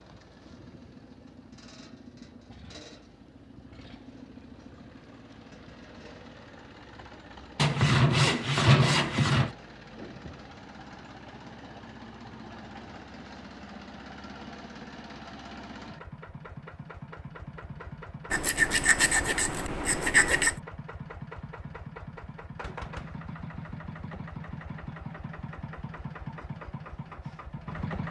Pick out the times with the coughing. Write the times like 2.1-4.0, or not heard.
not heard.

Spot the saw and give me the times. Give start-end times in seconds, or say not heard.
7.5-9.6, 18.3-20.6.